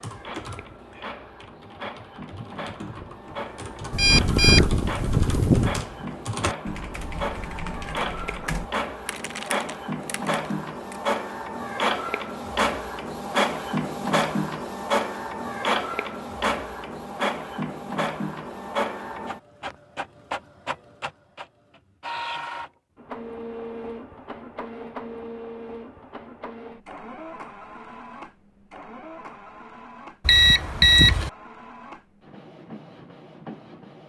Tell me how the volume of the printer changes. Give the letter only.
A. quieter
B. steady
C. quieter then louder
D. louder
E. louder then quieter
E.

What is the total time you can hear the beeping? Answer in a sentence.
You can hear the beeping for 3 seconds altogether.